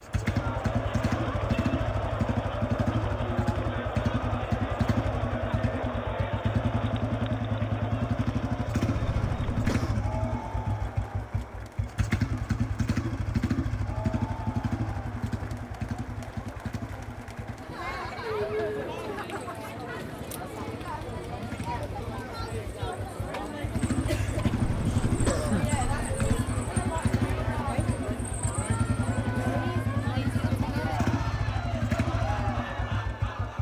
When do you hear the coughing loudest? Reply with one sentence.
The volume of the coughing peaks at 25 seconds.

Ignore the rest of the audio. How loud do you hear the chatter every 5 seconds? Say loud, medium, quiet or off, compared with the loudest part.
loud, loud, medium, loud, loud, loud, loud.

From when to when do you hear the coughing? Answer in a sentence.
You can hear the coughing from 8.9 to 10.1 s and from 24.4 to 26.4 s.